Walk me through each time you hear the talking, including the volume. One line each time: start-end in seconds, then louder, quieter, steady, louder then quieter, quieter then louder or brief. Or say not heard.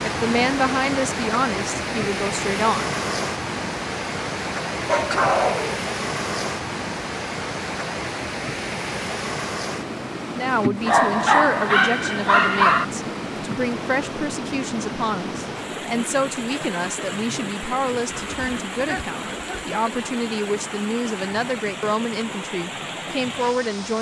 0.0-3.0 brief
10.3-23.9 steady.